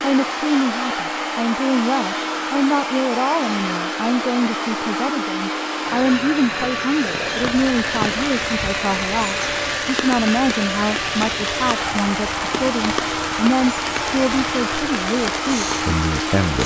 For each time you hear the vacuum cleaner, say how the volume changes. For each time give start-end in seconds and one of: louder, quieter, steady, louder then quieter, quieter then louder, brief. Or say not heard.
0.0-16.6 steady.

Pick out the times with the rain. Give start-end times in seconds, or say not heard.
7.2-16.6.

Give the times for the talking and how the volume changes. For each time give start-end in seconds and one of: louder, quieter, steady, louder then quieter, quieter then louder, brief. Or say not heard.
0.0-16.6 steady.